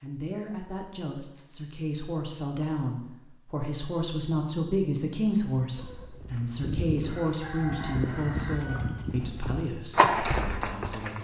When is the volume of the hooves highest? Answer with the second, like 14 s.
10 s.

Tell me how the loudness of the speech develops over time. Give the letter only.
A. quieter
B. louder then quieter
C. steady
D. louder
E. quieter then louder
B.